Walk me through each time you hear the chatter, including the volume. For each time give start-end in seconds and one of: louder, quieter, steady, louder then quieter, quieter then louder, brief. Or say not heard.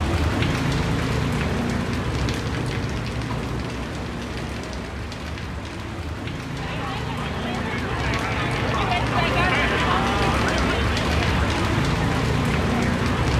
6.5-13.2 louder then quieter.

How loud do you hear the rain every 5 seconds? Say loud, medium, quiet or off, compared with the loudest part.
loud, medium, loud.